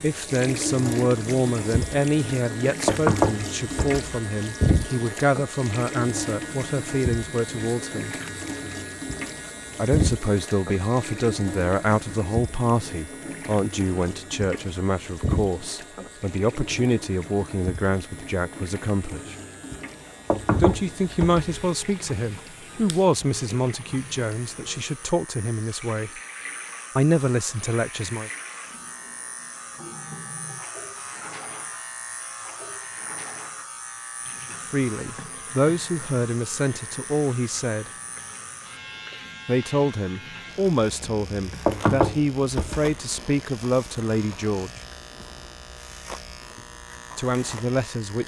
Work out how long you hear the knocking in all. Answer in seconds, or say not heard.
4 s.